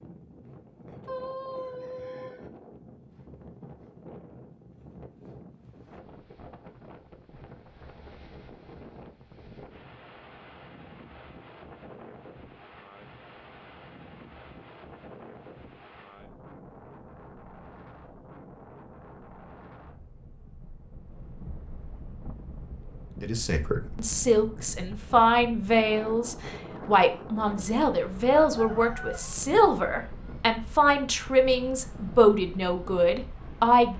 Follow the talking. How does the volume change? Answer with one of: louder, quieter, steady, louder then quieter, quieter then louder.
steady.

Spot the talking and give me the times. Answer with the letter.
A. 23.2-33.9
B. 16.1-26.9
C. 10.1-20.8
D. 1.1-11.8
A.